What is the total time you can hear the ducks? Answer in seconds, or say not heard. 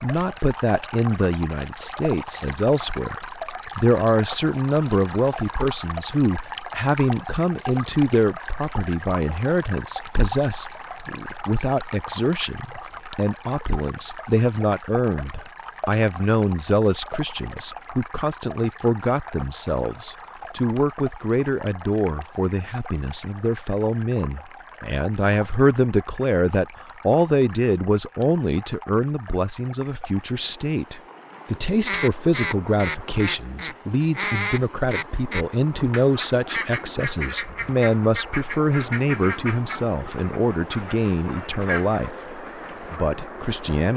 11 s.